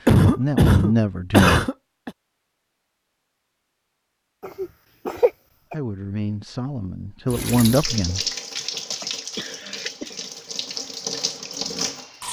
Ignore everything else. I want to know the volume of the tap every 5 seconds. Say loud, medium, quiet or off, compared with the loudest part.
off, loud, loud.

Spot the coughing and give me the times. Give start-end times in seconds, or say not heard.
0.1-2.1, 4.4-5.8, 8.6-10.2.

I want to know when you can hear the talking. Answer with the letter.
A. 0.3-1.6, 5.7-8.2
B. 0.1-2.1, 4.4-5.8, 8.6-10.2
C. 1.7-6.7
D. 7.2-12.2
A.